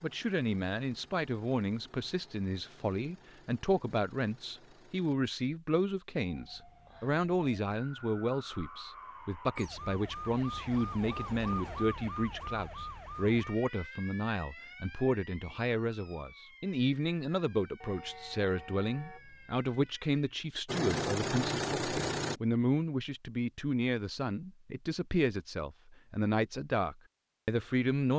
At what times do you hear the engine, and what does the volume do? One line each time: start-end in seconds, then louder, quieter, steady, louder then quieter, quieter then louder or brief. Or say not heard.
0.0-5.2 steady
20.6-22.4 brief.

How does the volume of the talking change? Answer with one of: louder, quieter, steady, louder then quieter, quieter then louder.
steady.